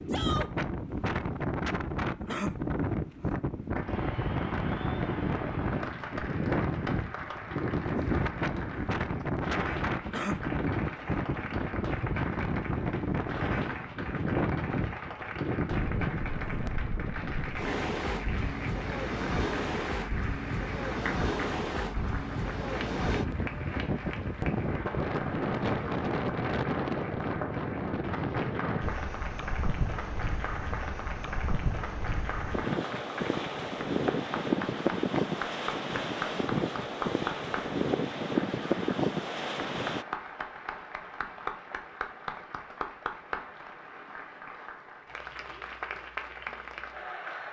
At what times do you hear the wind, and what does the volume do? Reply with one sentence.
You can hear the wind from 0.0 to 40.0 s, at a steady volume.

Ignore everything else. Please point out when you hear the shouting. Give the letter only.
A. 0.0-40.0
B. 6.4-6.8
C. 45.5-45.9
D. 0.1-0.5
D.